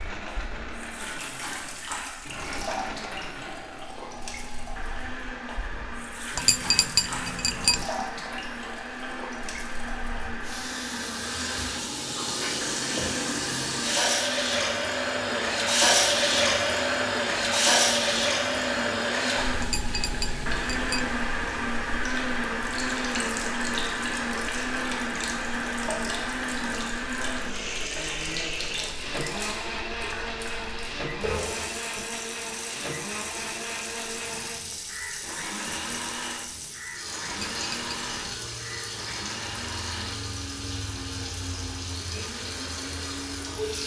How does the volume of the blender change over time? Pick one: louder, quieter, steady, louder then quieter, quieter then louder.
louder then quieter.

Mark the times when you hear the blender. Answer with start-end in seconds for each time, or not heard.
0.0-43.8.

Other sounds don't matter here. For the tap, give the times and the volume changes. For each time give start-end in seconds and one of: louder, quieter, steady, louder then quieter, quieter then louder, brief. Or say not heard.
0.1-43.8 louder then quieter.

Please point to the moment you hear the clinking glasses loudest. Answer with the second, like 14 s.
7 s.